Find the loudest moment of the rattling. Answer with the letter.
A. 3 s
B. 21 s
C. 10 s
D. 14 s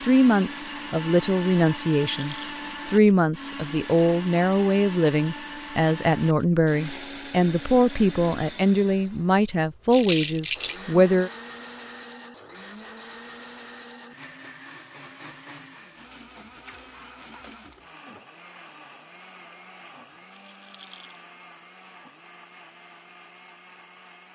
C.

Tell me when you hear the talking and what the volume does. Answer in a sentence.
The talking can be heard from 0.0 to 11.3 s, at a steady volume.